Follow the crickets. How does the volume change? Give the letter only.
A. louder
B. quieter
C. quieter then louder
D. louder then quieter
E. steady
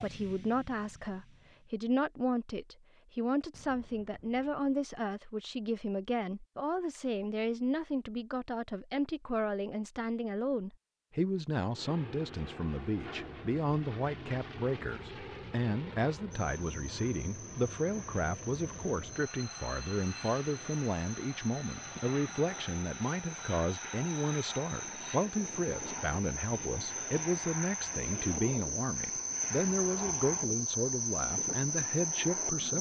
A.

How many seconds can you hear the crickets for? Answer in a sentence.
The crickets can be heard for 16 seconds in total.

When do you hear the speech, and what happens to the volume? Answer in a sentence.
The speech can be heard from 0.0 to 32.7 s, at a steady volume.